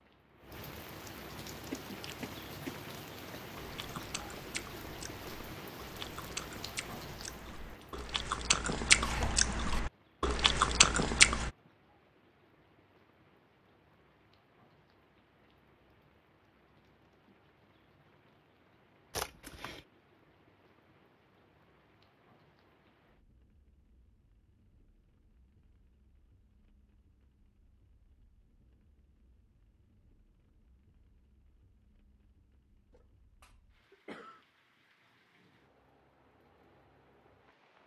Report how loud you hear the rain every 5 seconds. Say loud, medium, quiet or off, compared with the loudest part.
loud, loud, quiet, quiet, quiet, quiet, quiet, quiet.